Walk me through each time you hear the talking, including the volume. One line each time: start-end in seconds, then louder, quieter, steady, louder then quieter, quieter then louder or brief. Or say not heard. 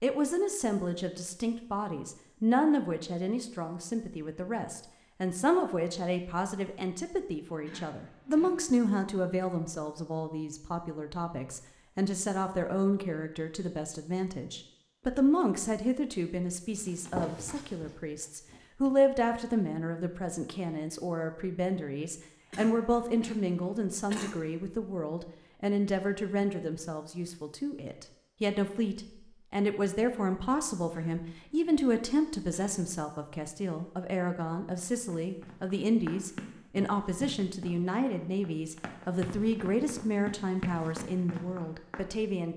0.0-42.5 steady.